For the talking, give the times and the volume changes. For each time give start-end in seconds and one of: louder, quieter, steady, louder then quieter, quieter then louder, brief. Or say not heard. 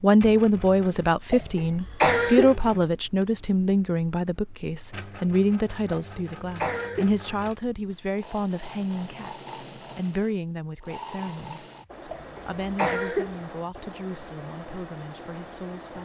0.0-16.0 quieter.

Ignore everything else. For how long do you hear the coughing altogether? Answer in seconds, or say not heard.
4 s.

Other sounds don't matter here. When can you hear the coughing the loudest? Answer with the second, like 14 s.
2 s.